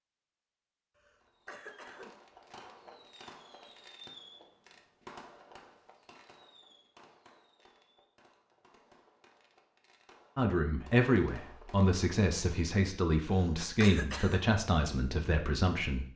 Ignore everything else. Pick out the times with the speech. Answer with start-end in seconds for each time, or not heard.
10.3-16.1.